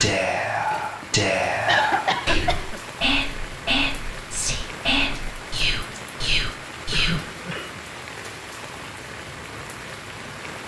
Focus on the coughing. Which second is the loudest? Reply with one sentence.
The loudest moment of the coughing is at 2 seconds.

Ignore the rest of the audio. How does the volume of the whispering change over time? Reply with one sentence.
The loudness of the whispering stays about the same.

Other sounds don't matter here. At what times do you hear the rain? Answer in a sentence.
The rain can be heard from 0.0 to 10.6 s.